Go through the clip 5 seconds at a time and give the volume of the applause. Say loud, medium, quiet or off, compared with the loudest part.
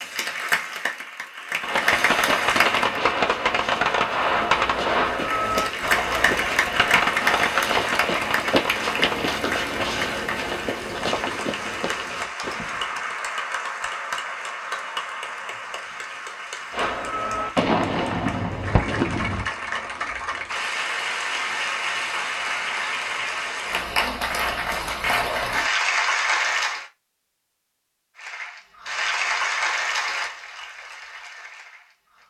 loud, loud, medium, medium, loud, loud, medium.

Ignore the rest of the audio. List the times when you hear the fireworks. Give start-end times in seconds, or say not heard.
1.6-9.3, 16.7-19.5.